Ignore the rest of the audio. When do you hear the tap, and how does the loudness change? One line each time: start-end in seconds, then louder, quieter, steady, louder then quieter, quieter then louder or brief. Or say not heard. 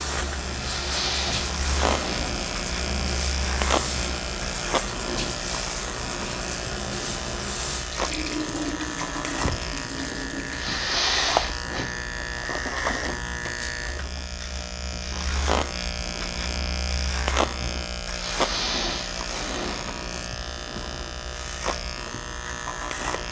0.0-10.8 steady.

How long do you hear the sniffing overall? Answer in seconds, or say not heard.
5 s.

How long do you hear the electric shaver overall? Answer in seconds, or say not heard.
23 s.